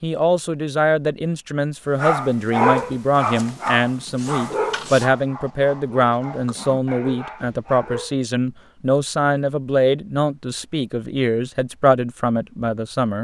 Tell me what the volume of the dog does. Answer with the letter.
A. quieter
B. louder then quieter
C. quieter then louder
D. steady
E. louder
A.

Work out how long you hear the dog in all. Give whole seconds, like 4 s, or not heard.
6 s.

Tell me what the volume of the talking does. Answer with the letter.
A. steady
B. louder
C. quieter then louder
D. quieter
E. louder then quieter
A.